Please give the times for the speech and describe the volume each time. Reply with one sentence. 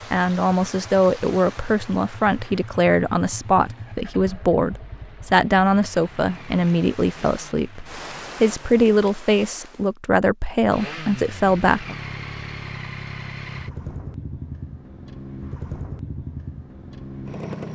The speech can be heard from 0.1 to 11.9 s, at a steady volume.